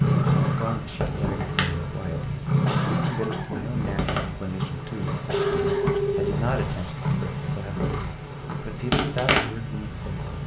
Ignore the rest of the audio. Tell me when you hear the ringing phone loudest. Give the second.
6 s.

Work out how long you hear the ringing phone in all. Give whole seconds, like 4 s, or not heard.
2 s.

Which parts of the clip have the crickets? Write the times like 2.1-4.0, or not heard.
0.1-10.2.